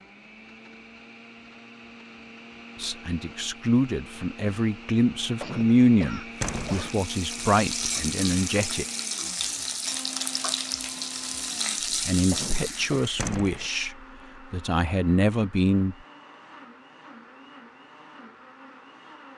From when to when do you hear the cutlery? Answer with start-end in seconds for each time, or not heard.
not heard.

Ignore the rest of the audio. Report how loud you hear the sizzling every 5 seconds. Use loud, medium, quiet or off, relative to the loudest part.
off, loud, loud, off.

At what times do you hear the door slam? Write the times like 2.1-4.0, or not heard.
6.4-6.9, 13.2-13.7.